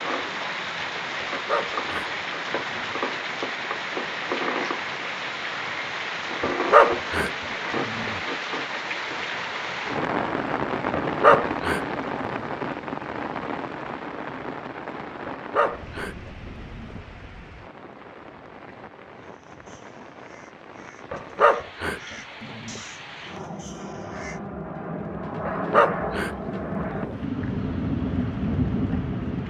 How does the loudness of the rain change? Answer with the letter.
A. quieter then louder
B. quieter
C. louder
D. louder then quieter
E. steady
A.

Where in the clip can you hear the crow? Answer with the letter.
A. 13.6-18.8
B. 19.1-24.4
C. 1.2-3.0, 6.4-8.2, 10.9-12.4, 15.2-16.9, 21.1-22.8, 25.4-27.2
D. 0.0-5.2
B.